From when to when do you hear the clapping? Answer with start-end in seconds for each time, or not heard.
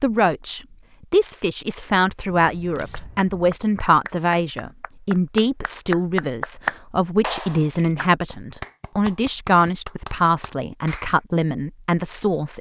2.9-11.2.